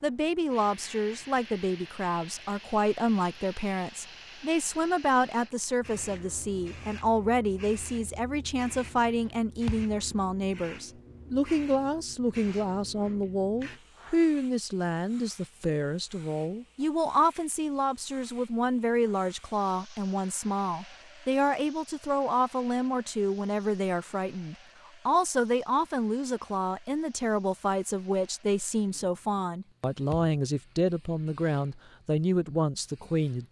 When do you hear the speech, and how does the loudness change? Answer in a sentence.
The speech can be heard from 0.0 to 33.4 s, at a steady volume.